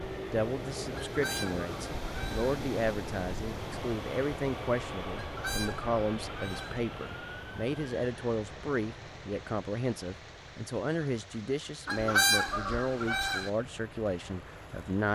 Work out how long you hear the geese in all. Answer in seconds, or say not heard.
5 s.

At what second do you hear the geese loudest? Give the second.
12 s.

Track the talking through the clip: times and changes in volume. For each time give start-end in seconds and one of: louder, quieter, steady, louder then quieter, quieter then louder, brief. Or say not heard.
0.3-15.0 steady.